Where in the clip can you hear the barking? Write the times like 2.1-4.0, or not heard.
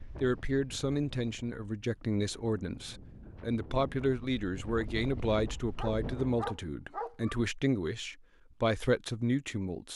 5.5-7.3.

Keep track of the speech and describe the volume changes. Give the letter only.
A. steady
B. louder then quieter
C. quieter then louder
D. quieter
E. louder
A.